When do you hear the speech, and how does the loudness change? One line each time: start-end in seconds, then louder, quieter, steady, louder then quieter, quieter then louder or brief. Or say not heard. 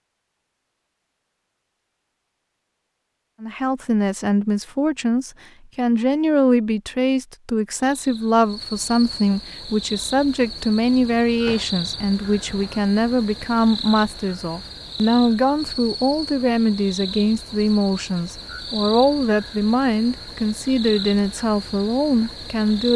3.4-22.9 steady.